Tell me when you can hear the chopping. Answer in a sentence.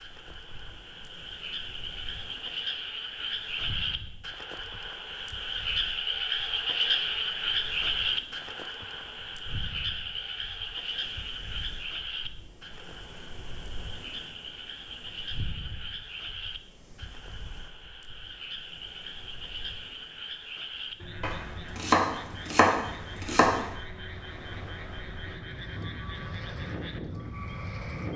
The chopping can be heard from 21.2 to 23.6 s.